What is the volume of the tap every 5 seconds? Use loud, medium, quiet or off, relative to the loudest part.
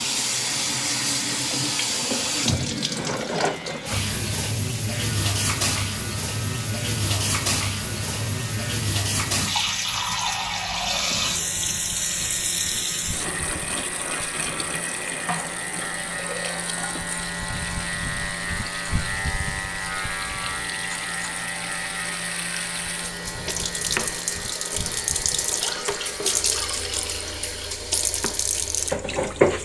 loud, loud, loud, medium, medium, loud.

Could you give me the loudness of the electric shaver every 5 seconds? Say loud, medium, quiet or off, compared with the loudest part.
medium, medium, medium, loud, loud, quiet.